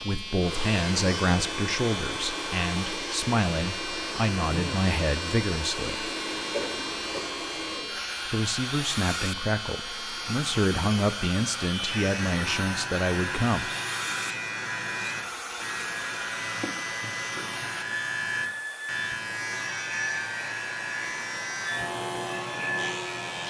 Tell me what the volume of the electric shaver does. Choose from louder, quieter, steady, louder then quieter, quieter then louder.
steady.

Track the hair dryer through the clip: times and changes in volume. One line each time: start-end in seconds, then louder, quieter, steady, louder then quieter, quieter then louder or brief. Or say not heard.
0.0-23.4 steady.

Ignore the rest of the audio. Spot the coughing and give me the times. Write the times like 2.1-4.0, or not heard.
6.5-7.4.